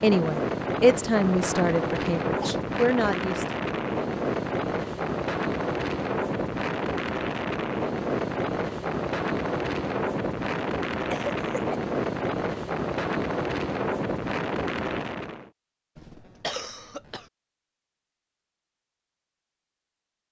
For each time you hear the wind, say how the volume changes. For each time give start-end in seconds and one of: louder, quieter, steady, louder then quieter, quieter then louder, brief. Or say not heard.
0.0-15.5 steady.